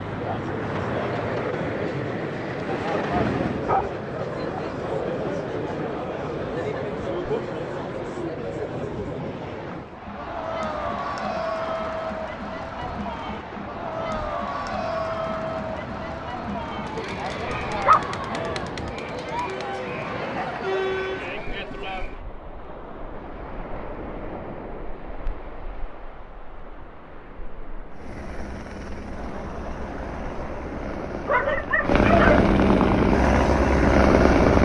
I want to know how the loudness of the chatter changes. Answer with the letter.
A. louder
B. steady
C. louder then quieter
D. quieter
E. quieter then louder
B.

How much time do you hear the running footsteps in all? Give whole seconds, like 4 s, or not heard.
not heard.